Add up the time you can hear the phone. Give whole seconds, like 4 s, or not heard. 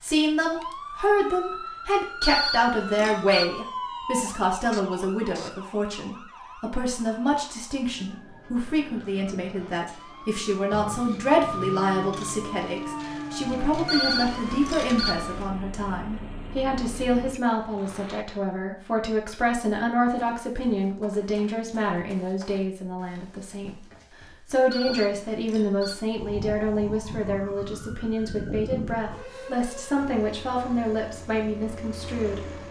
4 s.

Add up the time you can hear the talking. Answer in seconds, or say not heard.
32 s.